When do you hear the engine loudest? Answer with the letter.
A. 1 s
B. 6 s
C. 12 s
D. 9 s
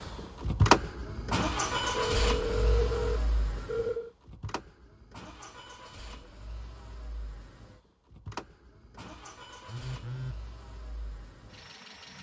A.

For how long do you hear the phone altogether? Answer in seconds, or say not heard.
3 s.